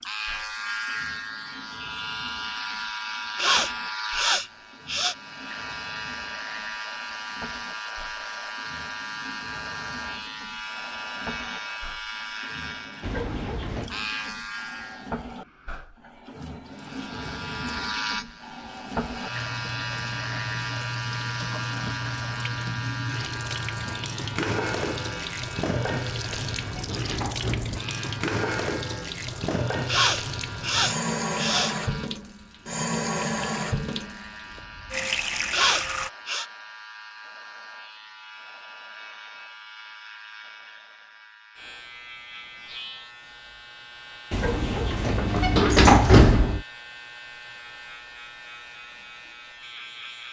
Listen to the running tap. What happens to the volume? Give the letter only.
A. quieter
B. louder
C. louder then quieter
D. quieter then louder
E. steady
B.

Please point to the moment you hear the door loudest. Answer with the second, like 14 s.
46 s.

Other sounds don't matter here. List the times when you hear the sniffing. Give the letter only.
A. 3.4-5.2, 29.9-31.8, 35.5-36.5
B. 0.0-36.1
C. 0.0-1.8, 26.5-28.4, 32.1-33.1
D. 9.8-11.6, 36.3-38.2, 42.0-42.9
A.